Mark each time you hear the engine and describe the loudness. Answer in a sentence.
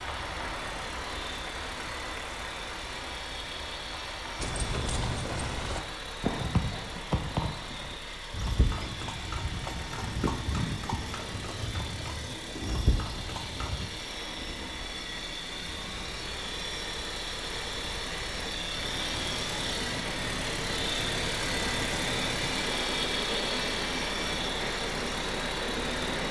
The engine can be heard from 0.0 to 26.2 s, getting louder.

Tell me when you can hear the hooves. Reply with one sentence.
You can hear the hooves from 4.3 to 13.9 s.